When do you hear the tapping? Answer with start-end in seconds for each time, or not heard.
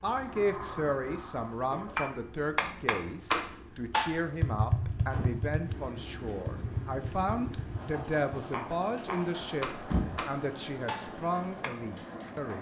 1.9-12.3.